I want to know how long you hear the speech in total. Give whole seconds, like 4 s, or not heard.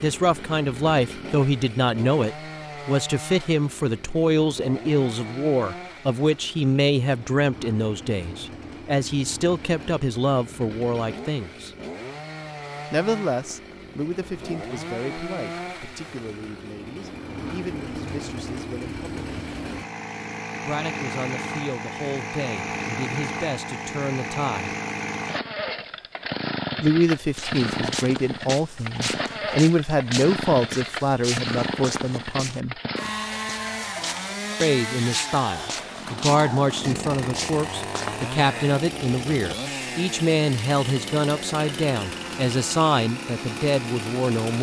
38 s.